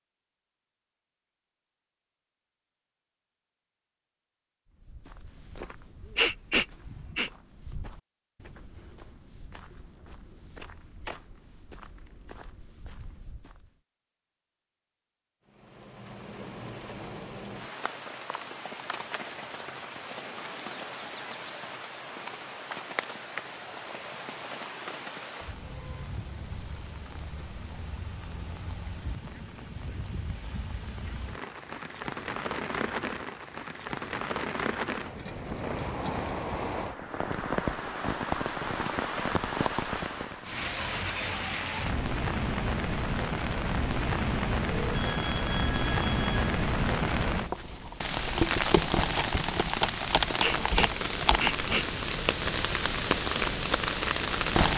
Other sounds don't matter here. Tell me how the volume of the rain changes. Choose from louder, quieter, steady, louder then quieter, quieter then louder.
louder.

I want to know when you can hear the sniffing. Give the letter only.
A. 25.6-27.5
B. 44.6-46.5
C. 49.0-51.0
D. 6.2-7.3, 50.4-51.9
D.